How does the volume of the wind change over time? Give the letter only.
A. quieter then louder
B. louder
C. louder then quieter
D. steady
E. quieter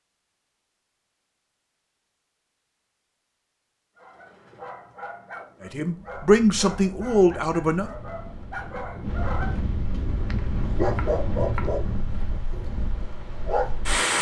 C.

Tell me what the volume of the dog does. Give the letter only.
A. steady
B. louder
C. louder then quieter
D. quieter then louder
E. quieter
B.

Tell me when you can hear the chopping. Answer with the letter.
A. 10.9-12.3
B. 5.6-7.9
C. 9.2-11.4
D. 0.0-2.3
A.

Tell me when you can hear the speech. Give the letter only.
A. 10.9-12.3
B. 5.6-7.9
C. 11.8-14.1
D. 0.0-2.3
B.